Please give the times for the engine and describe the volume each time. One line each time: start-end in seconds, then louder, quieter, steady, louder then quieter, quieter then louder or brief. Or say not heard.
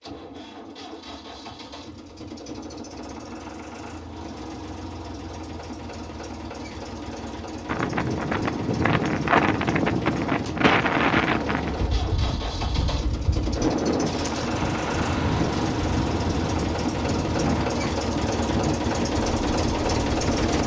0.0-20.6 louder.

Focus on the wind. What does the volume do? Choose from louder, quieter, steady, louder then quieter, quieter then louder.
quieter.